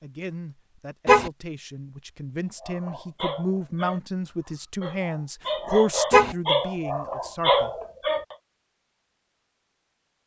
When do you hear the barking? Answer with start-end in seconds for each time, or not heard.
2.6-8.3.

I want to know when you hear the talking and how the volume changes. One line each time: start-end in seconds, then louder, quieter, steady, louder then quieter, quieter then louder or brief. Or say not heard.
0.0-7.8 louder then quieter.